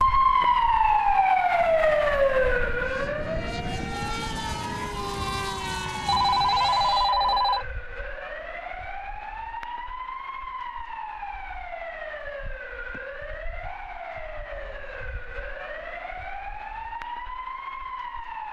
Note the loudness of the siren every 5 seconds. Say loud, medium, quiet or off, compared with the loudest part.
loud, quiet, quiet, quiet.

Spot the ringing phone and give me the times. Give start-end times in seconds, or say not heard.
6.0-7.7.